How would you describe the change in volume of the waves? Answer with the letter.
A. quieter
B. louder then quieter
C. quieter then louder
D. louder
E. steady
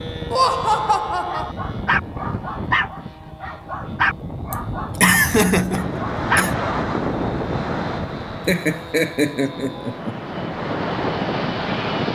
C.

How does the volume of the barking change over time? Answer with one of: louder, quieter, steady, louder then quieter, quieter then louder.
quieter.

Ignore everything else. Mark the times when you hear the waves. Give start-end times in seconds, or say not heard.
5.5-12.1.